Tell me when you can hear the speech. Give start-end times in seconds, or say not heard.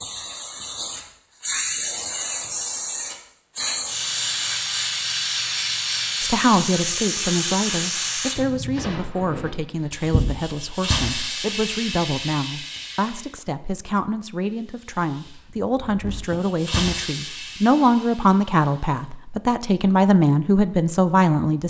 6.2-21.6.